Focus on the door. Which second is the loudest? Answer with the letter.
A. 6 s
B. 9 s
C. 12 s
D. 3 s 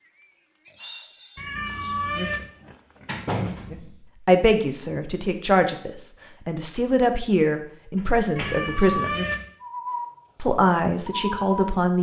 D.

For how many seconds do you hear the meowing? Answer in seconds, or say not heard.
2 s.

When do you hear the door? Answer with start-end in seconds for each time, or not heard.
2.6-4.0, 8.0-8.7.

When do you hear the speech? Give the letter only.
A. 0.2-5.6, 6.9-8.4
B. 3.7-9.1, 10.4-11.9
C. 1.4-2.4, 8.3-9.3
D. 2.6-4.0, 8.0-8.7
B.